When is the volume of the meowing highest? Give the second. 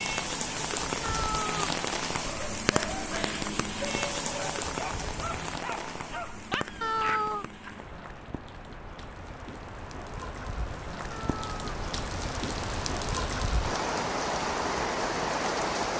7 s.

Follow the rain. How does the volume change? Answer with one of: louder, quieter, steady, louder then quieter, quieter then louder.
quieter then louder.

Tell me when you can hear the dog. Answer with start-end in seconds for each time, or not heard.
2.2-7.8.